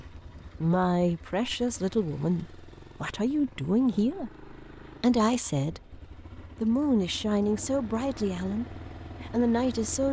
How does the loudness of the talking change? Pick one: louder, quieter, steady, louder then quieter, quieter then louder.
steady.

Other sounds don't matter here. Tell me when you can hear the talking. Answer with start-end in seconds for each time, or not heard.
0.6-10.0.